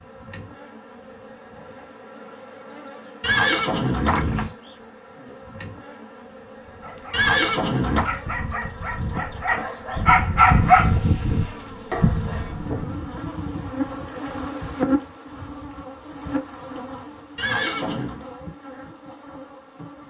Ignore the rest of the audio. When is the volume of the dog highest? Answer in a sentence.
The volume of the dog peaks at 11 seconds.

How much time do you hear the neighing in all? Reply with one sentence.
You can hear the neighing for 3 seconds altogether.